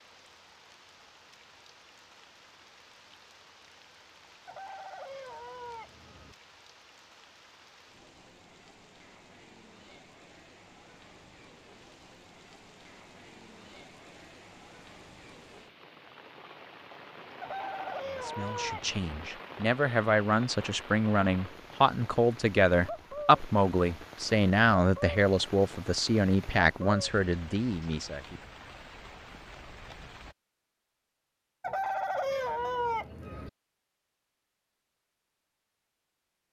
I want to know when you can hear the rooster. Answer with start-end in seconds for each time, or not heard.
4.5-6.3, 17.4-19.3, 31.6-33.5.